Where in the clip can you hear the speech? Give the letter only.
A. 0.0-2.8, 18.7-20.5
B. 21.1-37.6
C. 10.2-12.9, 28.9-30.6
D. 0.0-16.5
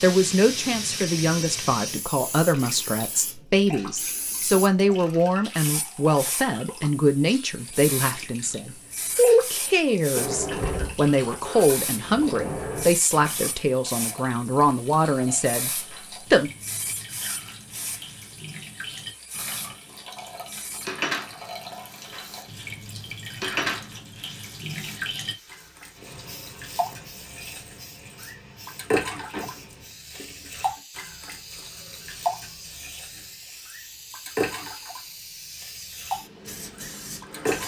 D.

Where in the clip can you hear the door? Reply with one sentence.
You can hear the door from 10.2 to 12.9 s and from 28.9 to 30.6 s.